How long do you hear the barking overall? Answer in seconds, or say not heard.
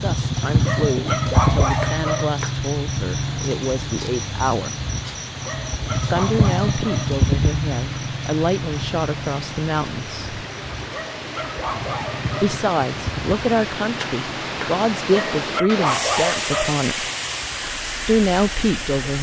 7 s.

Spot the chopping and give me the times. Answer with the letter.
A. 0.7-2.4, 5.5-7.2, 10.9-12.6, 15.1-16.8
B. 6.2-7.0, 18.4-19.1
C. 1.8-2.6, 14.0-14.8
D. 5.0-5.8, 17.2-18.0
C.